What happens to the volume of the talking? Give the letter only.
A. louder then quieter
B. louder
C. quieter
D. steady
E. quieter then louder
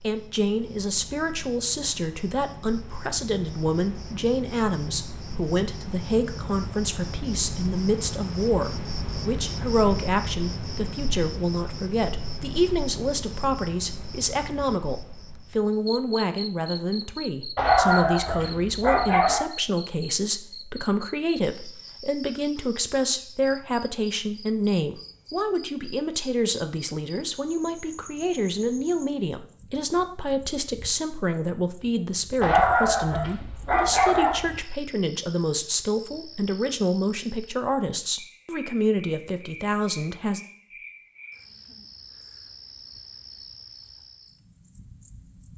D.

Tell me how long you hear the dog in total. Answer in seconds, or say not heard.
4 s.